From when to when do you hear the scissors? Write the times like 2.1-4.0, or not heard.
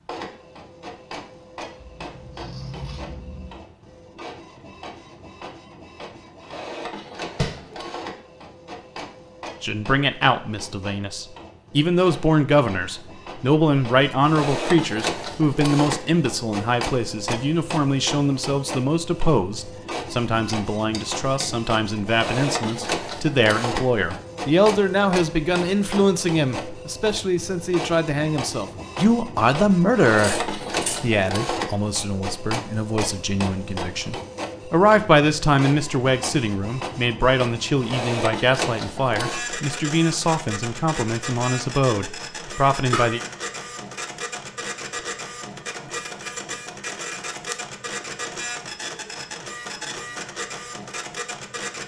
1.8-3.6, 30.1-31.1.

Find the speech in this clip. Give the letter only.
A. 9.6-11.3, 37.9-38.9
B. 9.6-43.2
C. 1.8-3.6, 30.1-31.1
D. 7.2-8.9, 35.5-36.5
B.